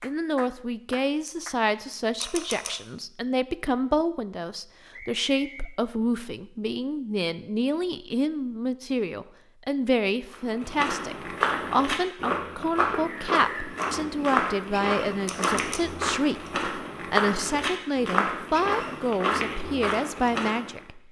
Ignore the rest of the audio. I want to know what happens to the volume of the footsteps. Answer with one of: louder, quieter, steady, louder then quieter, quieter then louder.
steady.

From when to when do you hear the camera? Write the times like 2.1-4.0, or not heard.
2.2-2.8, 15.2-15.8.